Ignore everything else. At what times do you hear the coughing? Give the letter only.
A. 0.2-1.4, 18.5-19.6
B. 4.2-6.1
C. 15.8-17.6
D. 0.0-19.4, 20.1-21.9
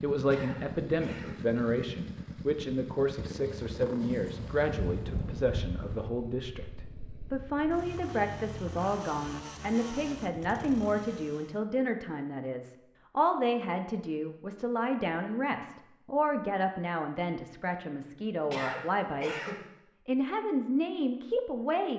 A.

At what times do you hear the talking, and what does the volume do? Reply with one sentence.
You can hear the talking from 0.0 to 19.4 s, at a steady volume; and briefly from 20.1 to 21.9 s.